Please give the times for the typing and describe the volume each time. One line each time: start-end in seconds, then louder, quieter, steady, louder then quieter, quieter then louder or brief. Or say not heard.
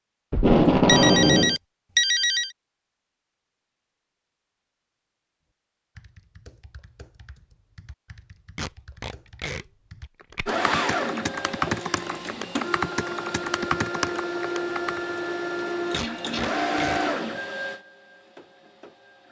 6.0-15.0 louder.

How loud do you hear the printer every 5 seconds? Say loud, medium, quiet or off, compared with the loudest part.
off, off, loud, loud.